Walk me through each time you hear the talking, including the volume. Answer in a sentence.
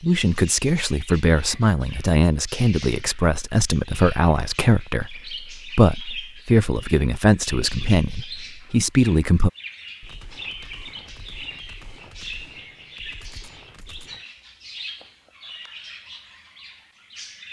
The talking can be heard from 0.0 to 9.5 s, at a steady volume.